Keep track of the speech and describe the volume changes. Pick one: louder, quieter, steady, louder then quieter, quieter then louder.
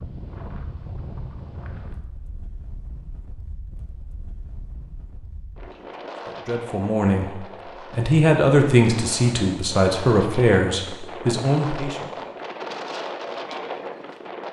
louder then quieter.